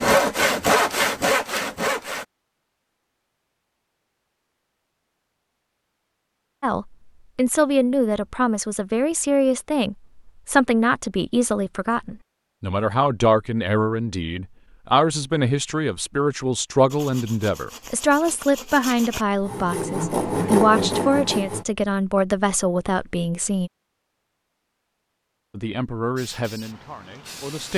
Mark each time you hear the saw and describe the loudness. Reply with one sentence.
You can hear the saw briefly from 0.0 to 2.2 s; and from 16.9 to 21.6 s, getting louder.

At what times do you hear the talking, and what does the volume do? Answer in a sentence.
The talking can be heard from 6.6 to 23.7 s, at a steady volume; and briefly from 25.5 to 27.7 s.